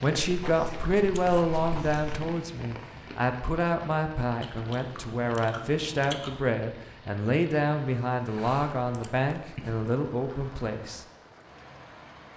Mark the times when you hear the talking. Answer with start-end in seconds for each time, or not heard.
0.0-11.1.